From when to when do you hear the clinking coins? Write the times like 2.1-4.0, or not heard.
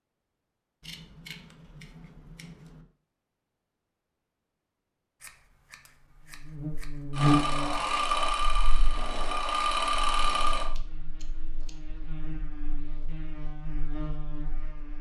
not heard.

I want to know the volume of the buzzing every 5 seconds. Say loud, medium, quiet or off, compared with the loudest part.
off, loud, quiet.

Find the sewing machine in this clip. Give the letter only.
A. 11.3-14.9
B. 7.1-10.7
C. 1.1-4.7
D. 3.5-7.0
B.